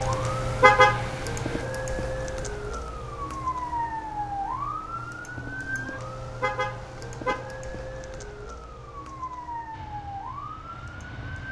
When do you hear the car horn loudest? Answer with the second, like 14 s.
1 s.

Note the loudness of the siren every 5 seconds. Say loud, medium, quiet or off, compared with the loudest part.
loud, medium, medium.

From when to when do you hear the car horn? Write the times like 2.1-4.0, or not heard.
0.6-1.1, 6.4-7.5.